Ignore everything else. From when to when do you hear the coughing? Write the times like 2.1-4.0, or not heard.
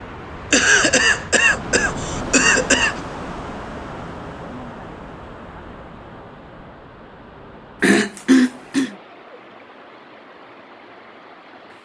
0.5-3.0, 7.8-8.9.